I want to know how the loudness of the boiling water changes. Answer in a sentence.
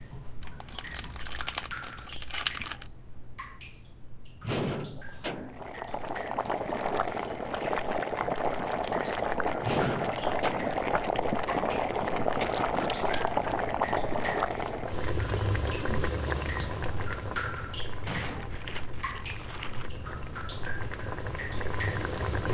The loudness of the boiling water goes down.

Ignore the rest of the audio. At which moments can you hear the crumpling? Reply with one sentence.
The crumpling can be heard from 0.4 to 2.9 s, from 12.4 to 13.3 s and from 18.2 to 19.9 s.